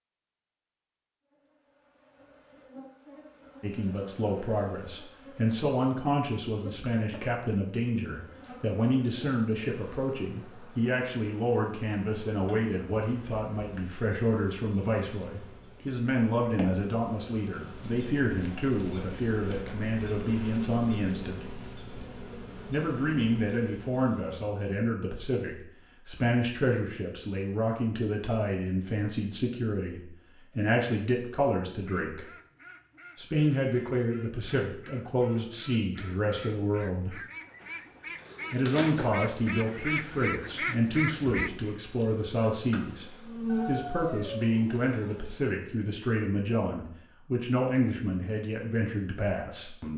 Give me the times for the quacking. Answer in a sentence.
The quacking can be heard from 31.8 to 41.5 s.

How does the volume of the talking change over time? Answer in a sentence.
The loudness of the talking stays about the same.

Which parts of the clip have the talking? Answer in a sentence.
The talking can be heard from 3.6 to 21.4 s, from 22.6 to 32.2 s, from 33.1 to 37.1 s and from 38.5 to 49.9 s.